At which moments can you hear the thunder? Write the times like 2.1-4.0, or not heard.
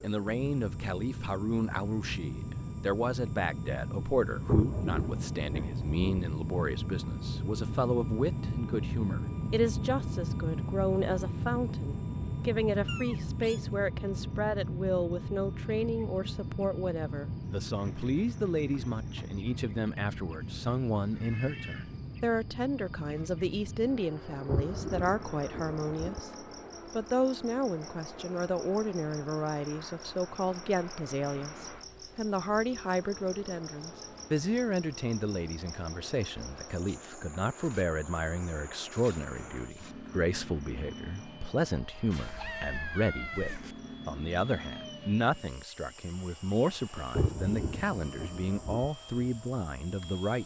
4.5-6.2, 24.4-26.2, 47.1-48.9.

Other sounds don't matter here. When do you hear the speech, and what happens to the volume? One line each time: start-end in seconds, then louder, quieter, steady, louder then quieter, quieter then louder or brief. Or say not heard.
0.0-50.4 steady.